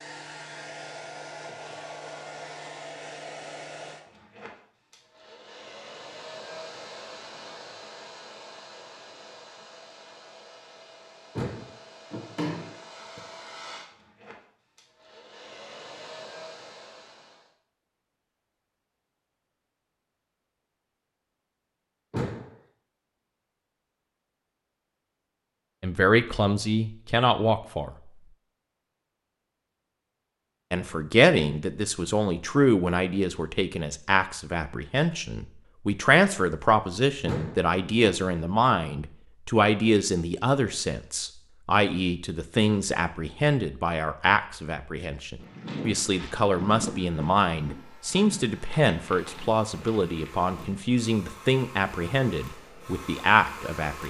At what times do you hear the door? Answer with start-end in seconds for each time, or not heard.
11.3-13.2, 22.1-22.6, 37.2-38.2.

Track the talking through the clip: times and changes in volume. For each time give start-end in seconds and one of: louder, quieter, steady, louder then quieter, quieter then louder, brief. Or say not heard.
25.8-27.9 brief
30.7-54.0 steady.